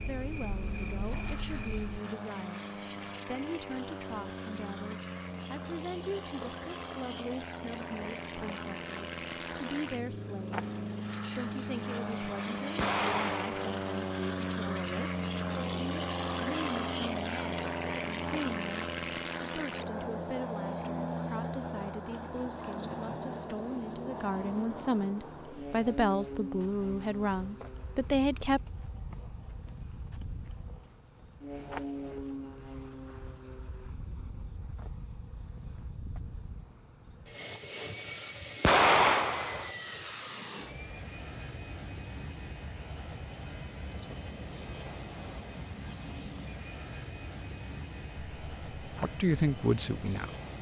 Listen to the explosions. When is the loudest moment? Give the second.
39 s.